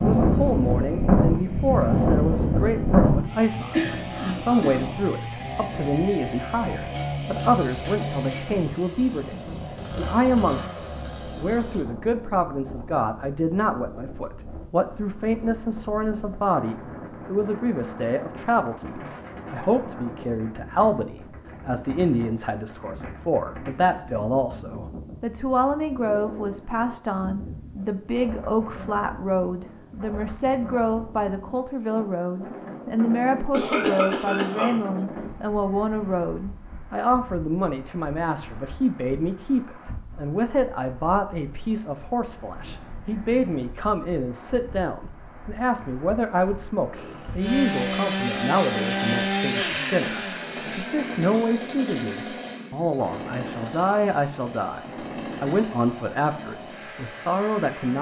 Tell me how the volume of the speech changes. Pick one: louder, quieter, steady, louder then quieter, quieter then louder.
steady.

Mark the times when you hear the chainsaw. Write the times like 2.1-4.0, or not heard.
0.0-11.8, 46.9-57.9.